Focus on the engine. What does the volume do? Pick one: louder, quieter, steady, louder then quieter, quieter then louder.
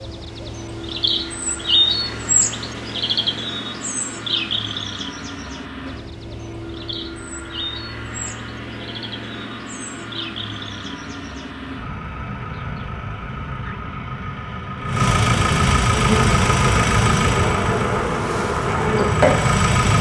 louder.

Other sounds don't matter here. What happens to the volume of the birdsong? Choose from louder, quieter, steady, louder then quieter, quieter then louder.
quieter.